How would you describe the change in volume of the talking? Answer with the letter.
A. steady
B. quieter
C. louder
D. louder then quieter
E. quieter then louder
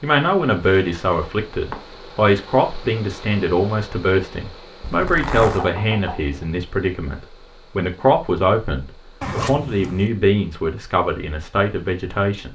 A.